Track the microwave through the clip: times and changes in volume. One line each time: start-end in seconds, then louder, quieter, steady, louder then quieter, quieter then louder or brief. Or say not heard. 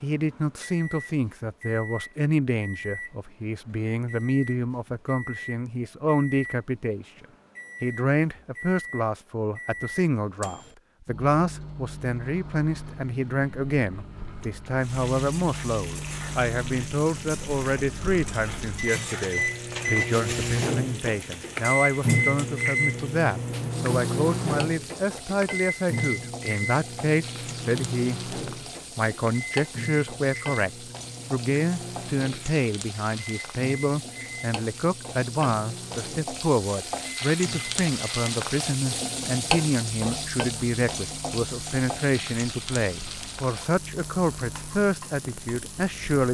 0.0-46.3 louder then quieter.